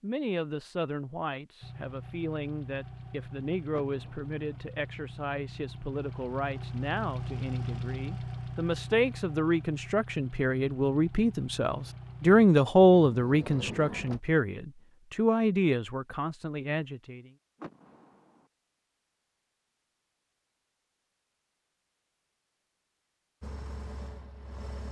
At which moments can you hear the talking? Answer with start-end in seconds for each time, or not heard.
0.0-17.3.